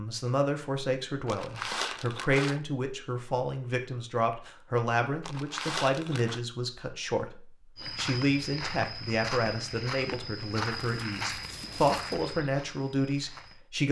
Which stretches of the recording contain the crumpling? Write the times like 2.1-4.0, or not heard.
1.2-2.6, 5.2-6.4, 10.7-12.2.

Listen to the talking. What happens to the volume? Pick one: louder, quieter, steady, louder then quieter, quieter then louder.
steady.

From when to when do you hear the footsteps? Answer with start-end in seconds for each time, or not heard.
7.8-13.6.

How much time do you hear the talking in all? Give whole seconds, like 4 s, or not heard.
14 s.